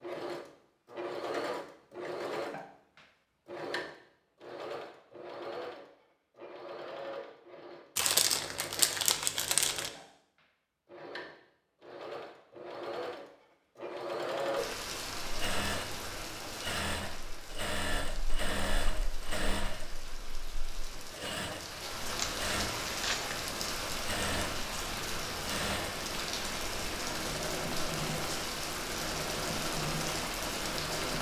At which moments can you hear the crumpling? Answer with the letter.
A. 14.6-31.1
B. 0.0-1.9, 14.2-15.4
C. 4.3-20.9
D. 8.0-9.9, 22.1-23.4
D.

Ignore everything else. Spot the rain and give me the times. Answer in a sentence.
You can hear the rain from 14.6 to 31.1 s.